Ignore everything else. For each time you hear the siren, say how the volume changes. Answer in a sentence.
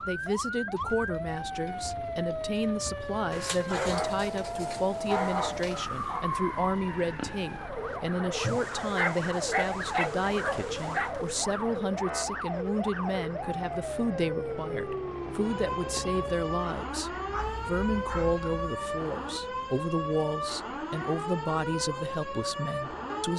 You can hear the siren from 0.0 to 23.3 s, at a steady volume.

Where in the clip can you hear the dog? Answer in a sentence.
The dog can be heard from 3.3 to 6.2 s, from 8.4 to 11.1 s and from 17.2 to 18.7 s.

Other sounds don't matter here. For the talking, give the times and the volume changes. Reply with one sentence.
You can hear the talking from 0.1 to 23.3 s, at a steady volume.